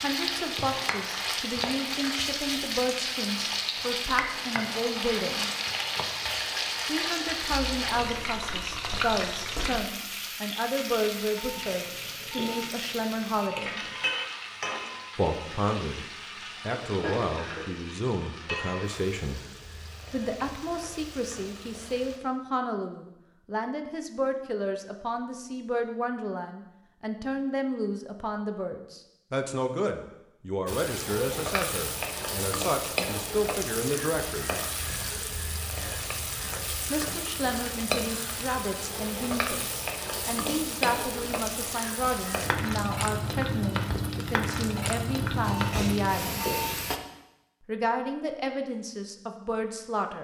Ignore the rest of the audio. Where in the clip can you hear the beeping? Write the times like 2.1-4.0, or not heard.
11.3-14.1, 45.4-46.9.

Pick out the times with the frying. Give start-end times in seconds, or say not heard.
0.0-22.2, 30.6-47.0.